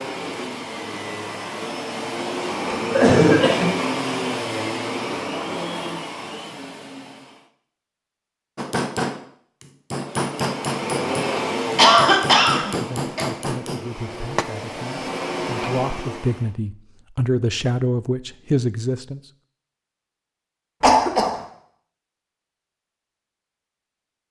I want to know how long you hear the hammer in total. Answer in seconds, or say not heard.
6 s.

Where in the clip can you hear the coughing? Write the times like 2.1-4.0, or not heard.
2.9-3.7, 11.3-13.2, 20.8-21.4.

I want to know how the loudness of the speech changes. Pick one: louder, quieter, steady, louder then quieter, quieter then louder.
louder.